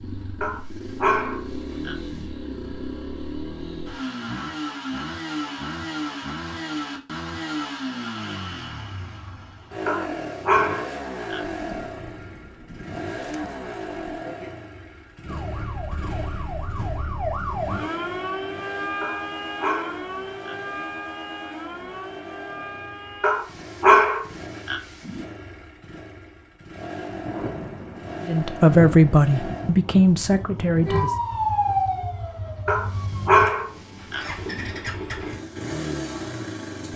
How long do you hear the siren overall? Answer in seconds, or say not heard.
11 s.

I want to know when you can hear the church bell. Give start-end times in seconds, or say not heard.
not heard.